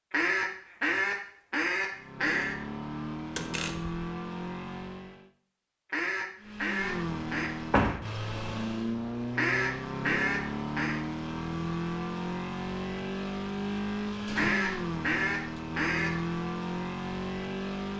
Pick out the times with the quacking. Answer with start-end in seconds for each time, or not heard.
0.1-2.5, 5.9-7.5, 9.3-11.0, 14.3-16.1.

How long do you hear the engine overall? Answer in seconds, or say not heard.
15 s.